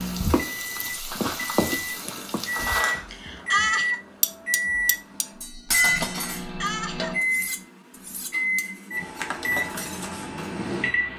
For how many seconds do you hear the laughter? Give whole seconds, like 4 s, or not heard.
2 s.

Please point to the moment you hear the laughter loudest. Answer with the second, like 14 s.
4 s.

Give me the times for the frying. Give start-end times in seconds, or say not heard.
0.0-2.9.